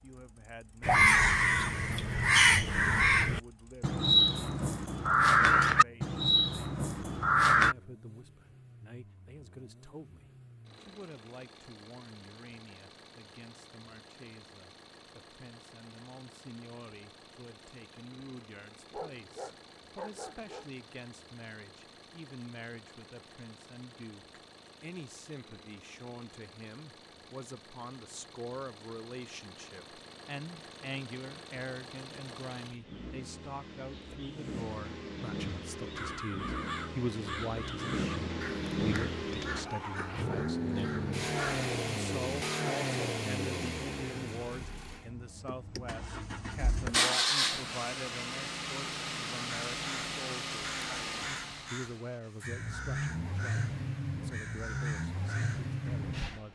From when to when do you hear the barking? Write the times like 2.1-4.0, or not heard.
18.9-20.7.